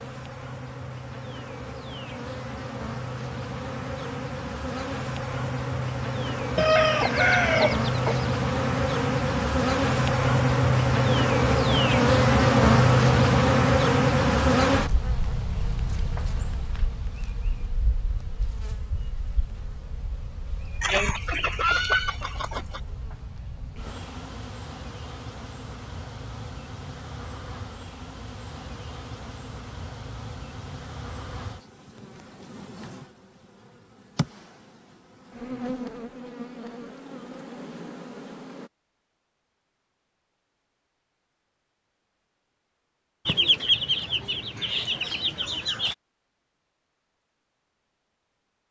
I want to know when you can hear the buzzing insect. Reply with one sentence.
You can hear the buzzing insect from 0.0 to 38.7 s.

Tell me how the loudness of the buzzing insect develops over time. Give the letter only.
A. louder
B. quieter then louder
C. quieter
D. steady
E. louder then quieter
E.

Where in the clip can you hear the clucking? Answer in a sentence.
You can hear the clucking from 6.5 to 8.2 s, from 20.8 to 22.8 s and from 43.2 to 46.0 s.